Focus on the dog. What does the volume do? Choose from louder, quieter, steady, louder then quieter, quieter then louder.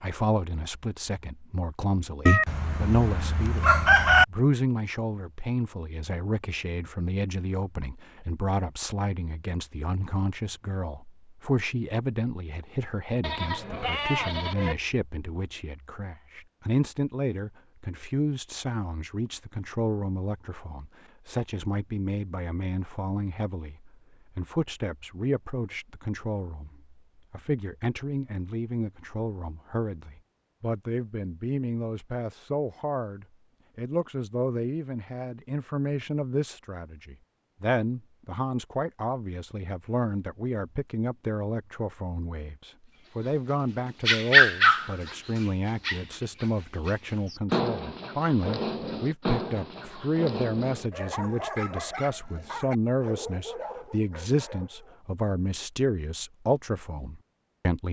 quieter.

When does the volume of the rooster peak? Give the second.
4 s.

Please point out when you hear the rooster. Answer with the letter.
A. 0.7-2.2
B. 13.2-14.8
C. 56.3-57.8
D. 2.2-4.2
D.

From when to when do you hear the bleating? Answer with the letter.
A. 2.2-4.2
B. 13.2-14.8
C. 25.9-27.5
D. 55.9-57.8
B.